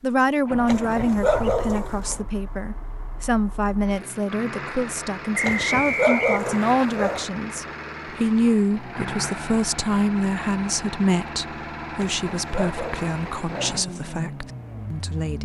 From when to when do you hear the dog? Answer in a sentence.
The dog can be heard from 0.7 to 2.2 s, from 5.4 to 7.2 s and from 11.9 to 13.8 s.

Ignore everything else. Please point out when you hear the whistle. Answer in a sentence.
You can hear the whistle from 5.3 to 6.8 s.